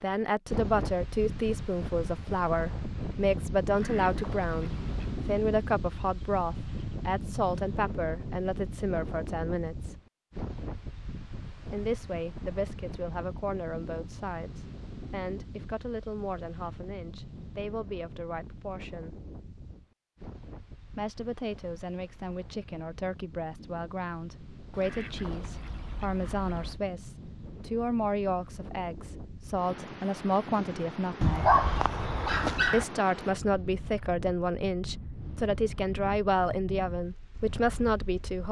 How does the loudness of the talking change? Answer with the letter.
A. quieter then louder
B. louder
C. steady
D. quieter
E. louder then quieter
A.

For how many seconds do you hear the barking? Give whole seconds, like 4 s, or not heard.
2 s.